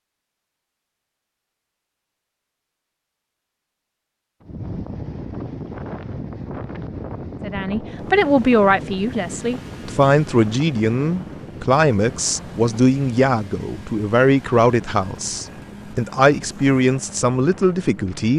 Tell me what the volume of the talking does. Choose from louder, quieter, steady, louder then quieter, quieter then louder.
steady.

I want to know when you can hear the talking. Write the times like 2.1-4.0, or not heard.
7.4-18.3.